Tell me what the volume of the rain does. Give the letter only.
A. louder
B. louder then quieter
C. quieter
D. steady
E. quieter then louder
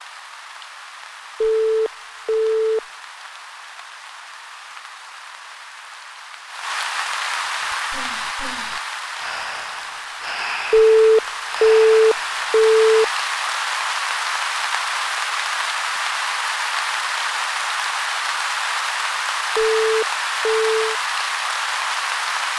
A.